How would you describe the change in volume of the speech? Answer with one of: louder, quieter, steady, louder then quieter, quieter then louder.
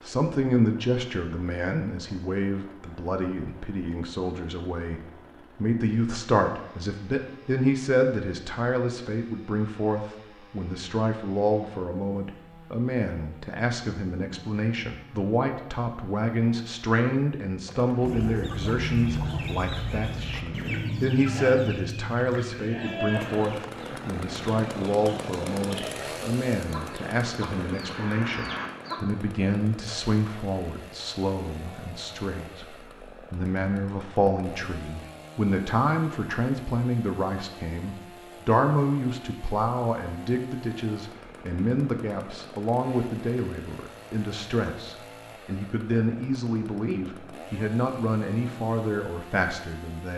steady.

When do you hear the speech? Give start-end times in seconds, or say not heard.
0.0-50.1.